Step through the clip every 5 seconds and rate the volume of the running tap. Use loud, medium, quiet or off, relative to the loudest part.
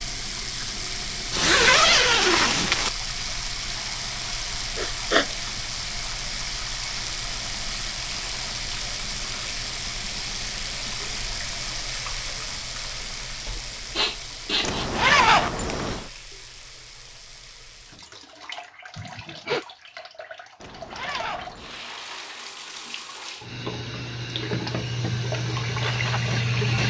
medium, medium, medium, quiet, medium, loud.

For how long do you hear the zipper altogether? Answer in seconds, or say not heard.
4 s.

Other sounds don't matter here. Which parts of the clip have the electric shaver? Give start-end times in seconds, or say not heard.
not heard.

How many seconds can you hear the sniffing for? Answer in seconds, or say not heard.
3 s.